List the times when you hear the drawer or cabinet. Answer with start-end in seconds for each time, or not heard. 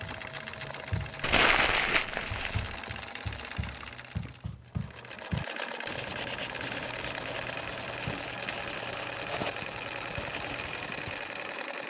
not heard.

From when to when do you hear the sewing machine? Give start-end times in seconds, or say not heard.
0.0-11.8.